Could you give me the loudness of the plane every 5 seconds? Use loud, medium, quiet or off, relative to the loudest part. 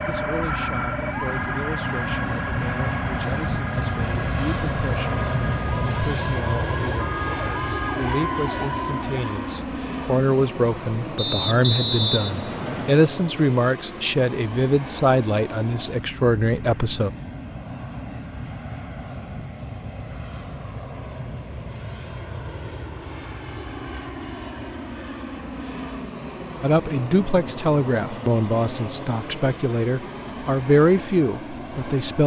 loud, loud, medium, medium, medium, medium, medium.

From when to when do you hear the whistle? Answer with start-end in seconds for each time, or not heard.
11.2-12.9.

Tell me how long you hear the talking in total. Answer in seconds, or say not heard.
23 s.